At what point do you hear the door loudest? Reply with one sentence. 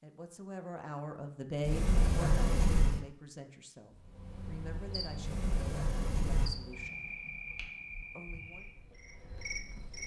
The loudest moment of the door is at 2 seconds.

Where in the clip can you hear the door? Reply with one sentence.
You can hear the door from 1.6 to 3.0 s and from 5.2 to 6.5 s.